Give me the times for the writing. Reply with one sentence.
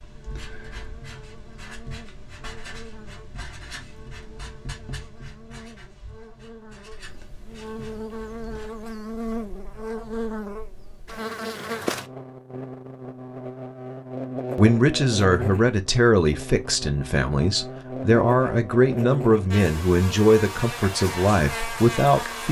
The writing can be heard from 0.0 to 8.8 s.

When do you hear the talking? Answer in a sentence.
You can hear the talking from 14.6 to 22.4 s.